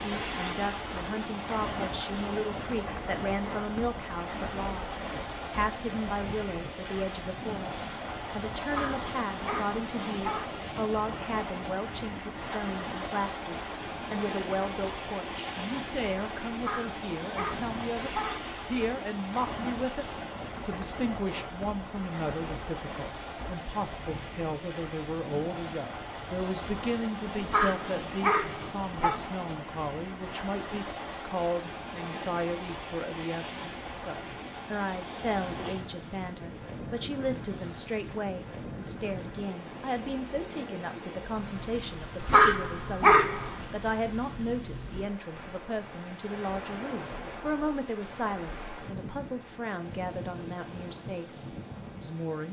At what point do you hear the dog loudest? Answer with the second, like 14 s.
43 s.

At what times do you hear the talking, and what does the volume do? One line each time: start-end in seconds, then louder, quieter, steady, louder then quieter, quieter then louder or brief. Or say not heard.
0.0-52.4 steady.